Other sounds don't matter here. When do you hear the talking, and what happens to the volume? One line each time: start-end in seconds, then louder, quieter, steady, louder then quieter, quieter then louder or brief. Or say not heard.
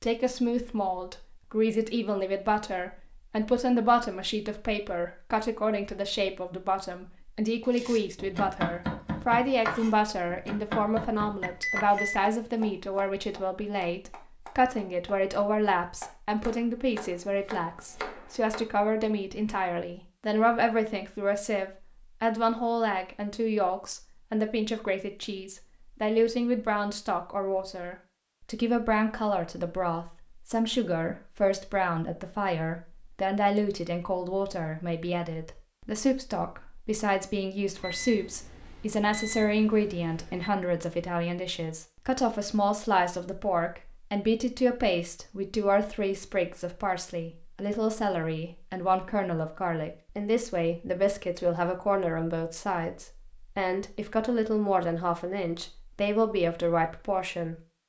0.0-57.5 steady.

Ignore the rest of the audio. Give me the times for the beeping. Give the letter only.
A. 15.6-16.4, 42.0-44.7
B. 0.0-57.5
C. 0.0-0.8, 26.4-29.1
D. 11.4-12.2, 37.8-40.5
D.